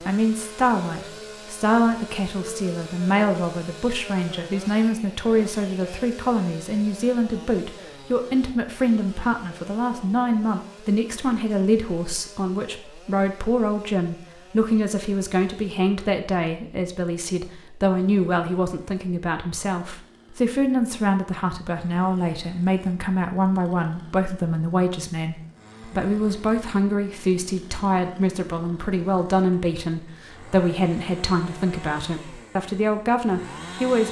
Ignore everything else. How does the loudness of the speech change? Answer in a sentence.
The loudness of the speech stays about the same.